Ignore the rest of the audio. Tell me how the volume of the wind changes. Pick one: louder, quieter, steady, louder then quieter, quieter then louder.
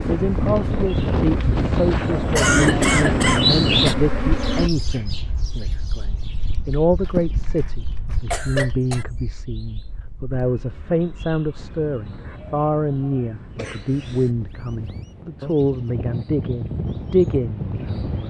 quieter then louder.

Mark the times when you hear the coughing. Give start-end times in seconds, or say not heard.
2.4-4.0, 7.0-9.1, 13.6-14.3.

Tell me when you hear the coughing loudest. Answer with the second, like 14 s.
3 s.